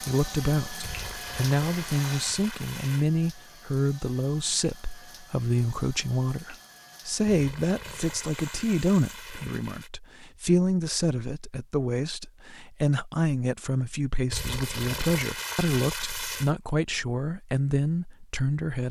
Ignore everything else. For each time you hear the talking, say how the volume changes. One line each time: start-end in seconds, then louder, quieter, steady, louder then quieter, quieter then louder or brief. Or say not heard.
0.0-18.8 steady.